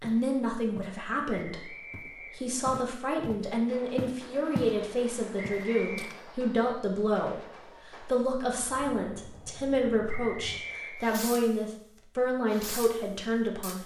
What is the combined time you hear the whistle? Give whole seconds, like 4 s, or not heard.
3 s.